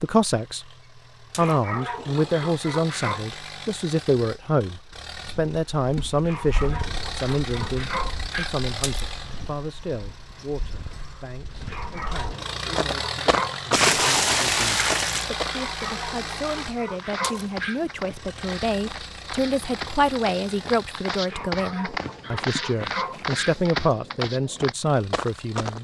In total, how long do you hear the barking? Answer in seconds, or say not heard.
11 s.